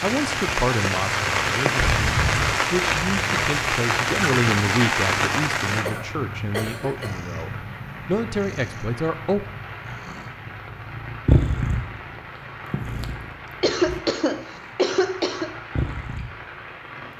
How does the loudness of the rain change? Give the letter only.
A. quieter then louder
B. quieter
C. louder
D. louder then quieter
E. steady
B.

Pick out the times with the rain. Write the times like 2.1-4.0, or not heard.
0.0-17.1.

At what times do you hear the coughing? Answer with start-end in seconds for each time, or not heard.
1.8-2.5, 5.8-7.2, 13.6-15.5.